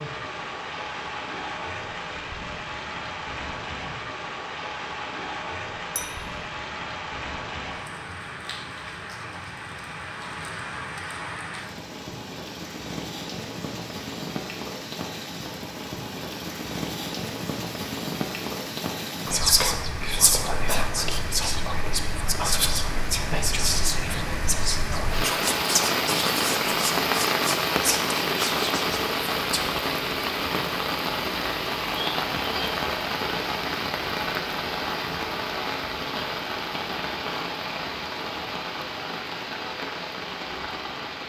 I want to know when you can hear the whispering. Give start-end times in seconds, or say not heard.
19.2-29.7.